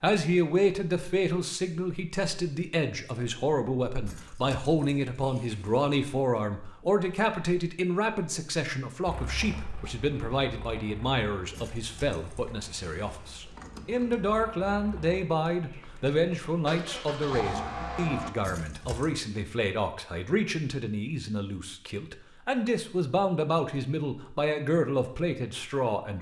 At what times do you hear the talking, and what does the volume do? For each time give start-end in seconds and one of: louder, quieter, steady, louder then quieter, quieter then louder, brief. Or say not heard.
0.0-26.1 steady.